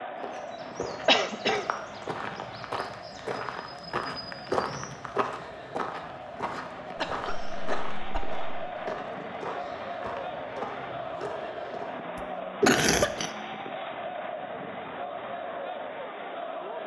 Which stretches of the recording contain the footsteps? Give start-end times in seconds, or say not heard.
0.2-11.9.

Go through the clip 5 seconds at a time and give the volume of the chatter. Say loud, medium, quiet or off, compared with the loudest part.
medium, loud, loud, loud.